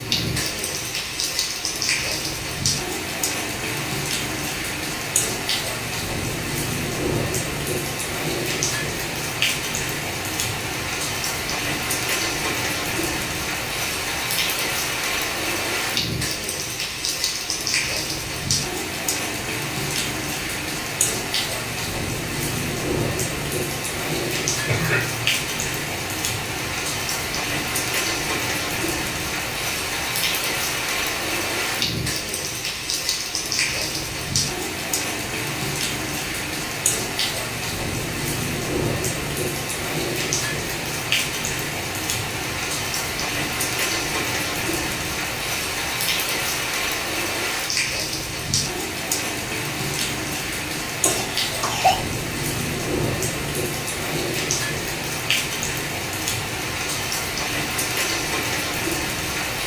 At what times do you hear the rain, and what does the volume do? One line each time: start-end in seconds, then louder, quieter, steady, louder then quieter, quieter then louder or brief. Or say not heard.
0.0-59.6 steady.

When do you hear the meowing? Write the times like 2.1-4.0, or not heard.
not heard.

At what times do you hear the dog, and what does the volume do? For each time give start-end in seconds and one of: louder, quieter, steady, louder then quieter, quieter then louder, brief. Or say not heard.
not heard.